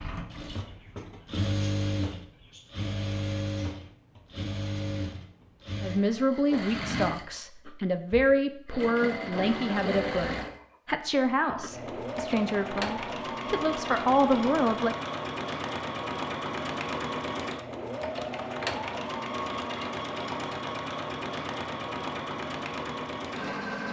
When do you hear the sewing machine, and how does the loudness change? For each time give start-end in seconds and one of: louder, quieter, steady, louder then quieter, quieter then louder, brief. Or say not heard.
0.0-23.8 steady.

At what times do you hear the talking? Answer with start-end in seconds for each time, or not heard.
5.8-14.9.